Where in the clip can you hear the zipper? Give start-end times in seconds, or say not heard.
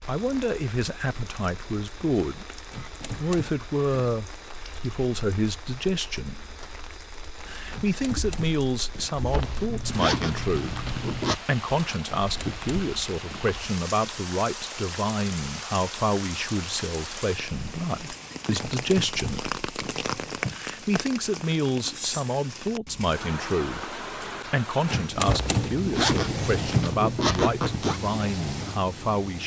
9.3-11.4, 25.2-28.0.